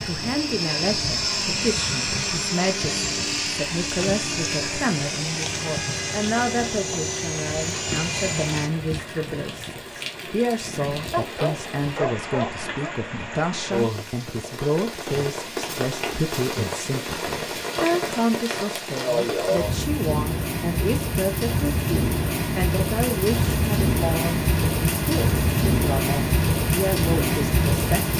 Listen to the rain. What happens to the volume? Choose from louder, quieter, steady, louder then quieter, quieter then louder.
louder.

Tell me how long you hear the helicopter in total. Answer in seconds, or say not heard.
9 s.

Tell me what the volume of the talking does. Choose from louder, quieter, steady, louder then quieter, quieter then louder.
steady.